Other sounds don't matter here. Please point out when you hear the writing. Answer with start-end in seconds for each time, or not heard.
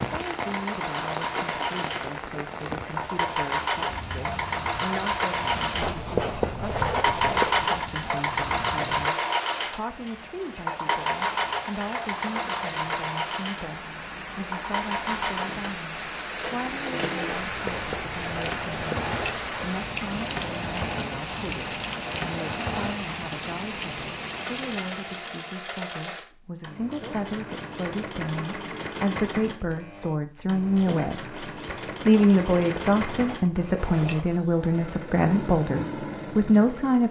5.8-7.6, 17.3-19.6, 32.1-34.5.